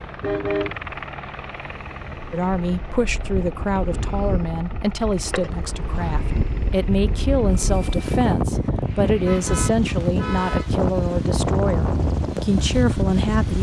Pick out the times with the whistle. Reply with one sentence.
You can't hear the whistle here.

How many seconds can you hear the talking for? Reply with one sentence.
The talking can be heard for 11 seconds in total.